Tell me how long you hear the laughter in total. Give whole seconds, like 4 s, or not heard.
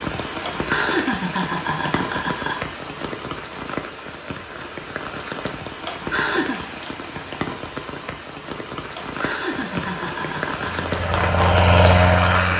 5 s.